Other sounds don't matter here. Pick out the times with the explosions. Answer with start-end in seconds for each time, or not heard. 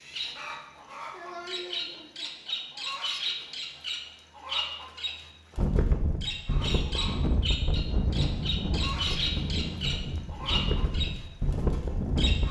not heard.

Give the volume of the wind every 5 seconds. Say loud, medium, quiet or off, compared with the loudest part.
off, loud, loud.